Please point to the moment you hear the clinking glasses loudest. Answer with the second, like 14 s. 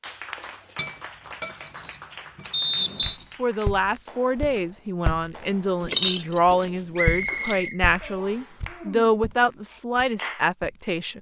6 s.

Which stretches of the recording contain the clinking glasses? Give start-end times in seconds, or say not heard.
0.8-3.4, 5.8-7.7.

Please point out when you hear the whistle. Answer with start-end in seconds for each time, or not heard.
2.5-3.2, 7.0-8.6.